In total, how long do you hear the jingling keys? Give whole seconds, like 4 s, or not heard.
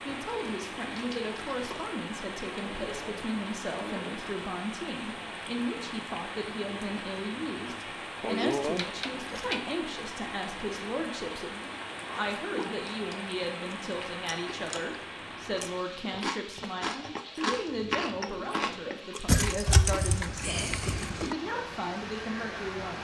5 s.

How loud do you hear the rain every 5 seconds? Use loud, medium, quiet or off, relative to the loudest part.
loud, loud, loud, medium, loud.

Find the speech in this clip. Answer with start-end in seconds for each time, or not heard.
0.1-22.9.